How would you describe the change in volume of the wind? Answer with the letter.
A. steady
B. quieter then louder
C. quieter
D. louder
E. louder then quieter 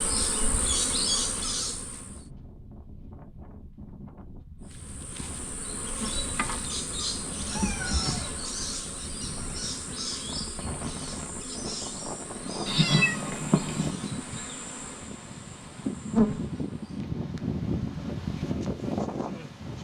D.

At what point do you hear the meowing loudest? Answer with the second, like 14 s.
13 s.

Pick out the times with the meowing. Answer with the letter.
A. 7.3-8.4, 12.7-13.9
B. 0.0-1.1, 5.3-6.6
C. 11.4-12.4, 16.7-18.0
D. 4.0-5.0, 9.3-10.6
A.